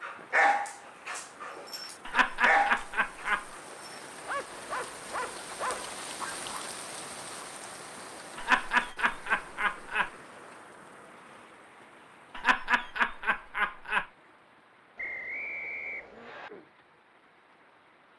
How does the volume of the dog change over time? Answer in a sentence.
The loudness of the dog goes down, then up.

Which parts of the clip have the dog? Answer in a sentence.
The dog can be heard from 0.0 to 6.6 s.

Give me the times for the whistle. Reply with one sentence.
The whistle can be heard from 14.9 to 16.5 s.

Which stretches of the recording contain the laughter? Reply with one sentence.
The laughter can be heard from 2.0 to 3.5 s, from 8.3 to 10.1 s and from 12.3 to 14.1 s.